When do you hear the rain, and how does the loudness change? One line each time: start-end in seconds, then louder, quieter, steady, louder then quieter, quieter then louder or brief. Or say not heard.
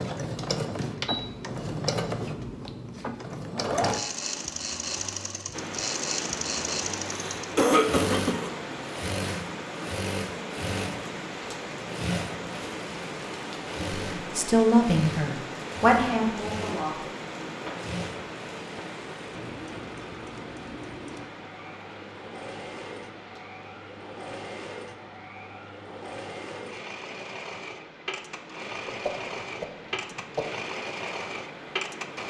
5.5-32.2 quieter.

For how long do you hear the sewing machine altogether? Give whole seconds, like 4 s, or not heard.
32 s.